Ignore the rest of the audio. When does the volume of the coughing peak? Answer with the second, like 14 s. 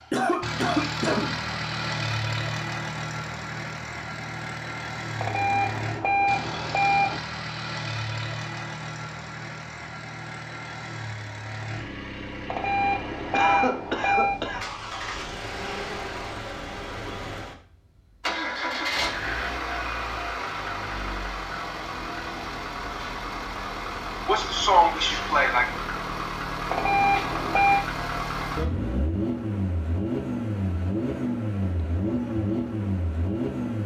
25 s.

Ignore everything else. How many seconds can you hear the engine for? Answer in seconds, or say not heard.
34 s.